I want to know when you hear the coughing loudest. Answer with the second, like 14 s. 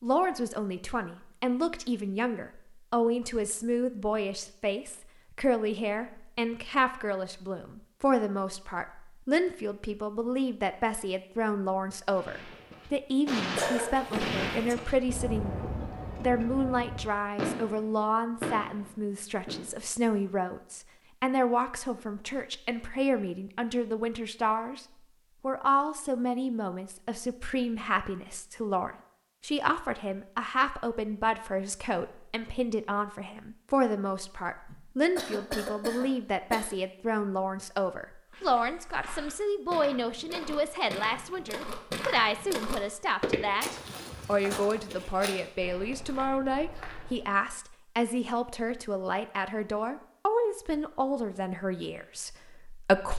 14 s.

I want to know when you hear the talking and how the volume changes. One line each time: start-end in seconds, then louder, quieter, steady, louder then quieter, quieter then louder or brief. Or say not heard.
0.0-53.1 steady.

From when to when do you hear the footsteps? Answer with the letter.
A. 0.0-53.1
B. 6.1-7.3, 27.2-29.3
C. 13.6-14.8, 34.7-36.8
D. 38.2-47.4
D.